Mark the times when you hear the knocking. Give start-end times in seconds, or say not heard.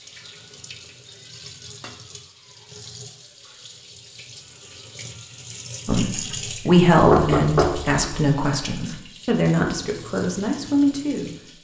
7.1-8.2.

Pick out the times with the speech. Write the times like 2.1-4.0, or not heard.
5.8-11.3.